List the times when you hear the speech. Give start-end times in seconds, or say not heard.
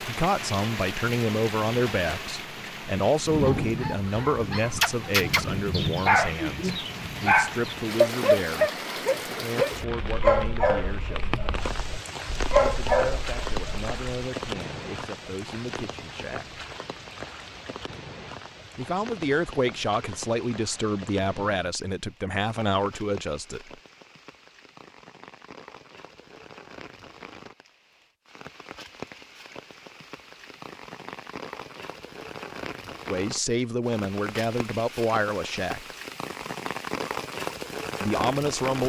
0.0-11.3, 12.6-16.6, 18.8-23.7, 33.0-35.9, 38.0-38.8.